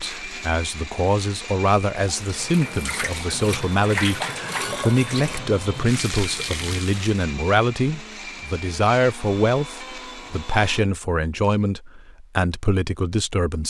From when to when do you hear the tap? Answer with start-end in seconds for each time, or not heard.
2.1-7.2.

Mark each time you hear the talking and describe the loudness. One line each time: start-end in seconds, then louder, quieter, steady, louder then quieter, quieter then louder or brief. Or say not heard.
0.0-13.6 steady.